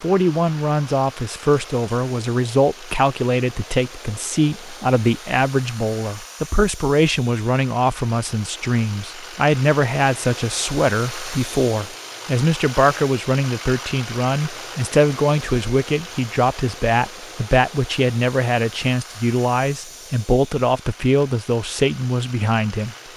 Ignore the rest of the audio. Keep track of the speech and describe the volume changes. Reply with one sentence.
The volume of the speech stays about the same.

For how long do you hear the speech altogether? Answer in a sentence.
You can hear the speech for 23 seconds altogether.